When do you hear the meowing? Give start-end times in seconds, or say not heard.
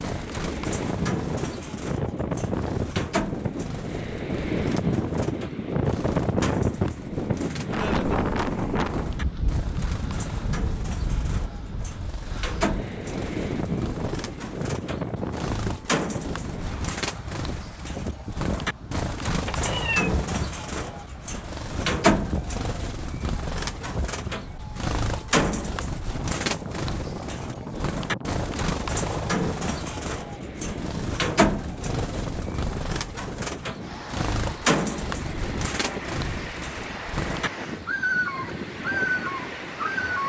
19.4-20.1.